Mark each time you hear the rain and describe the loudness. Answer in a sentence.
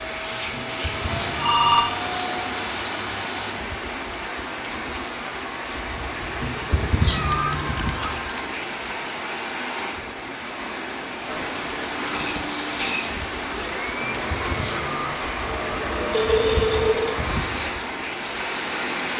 The rain can be heard from 0.0 to 19.1 s, at a steady volume.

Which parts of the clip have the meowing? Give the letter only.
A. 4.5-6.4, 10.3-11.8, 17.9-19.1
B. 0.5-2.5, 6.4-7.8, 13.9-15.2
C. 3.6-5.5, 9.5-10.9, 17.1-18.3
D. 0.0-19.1
B.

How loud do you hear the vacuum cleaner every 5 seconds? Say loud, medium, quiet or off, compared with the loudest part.
loud, off, loud, loud.